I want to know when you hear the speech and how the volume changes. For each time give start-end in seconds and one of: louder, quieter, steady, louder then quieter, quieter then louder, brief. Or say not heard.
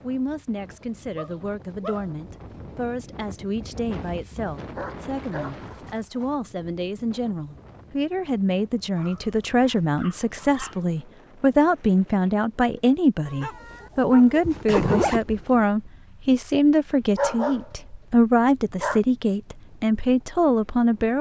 0.0-21.1 louder.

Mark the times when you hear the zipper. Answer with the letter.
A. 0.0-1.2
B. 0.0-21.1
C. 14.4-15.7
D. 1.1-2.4
C.